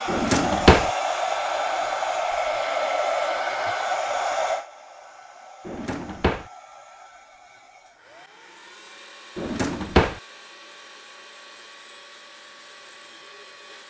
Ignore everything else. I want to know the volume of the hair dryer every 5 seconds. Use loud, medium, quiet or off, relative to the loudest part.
loud, quiet, quiet.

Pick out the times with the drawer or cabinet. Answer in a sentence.
The drawer or cabinet can be heard from 0.1 to 0.9 s, from 5.7 to 6.5 s and from 9.3 to 10.2 s.